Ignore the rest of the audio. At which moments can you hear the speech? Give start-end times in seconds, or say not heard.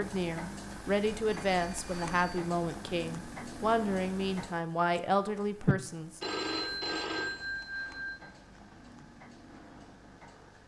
0.0-6.2.